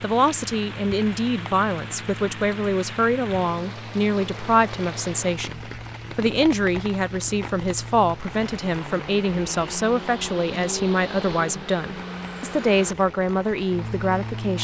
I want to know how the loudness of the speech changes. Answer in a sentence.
The volume of the speech stays about the same.